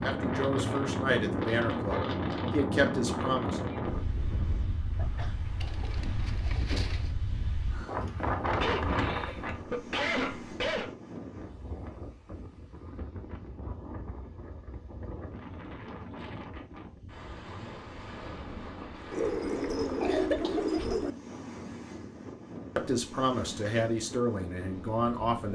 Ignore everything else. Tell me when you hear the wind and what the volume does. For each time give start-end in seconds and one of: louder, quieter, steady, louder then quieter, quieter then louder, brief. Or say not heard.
0.0-25.5 quieter.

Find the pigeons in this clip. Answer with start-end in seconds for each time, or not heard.
5.6-7.1, 19.1-21.1.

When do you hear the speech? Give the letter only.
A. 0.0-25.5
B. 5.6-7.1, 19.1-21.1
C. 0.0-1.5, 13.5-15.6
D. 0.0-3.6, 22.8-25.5
D.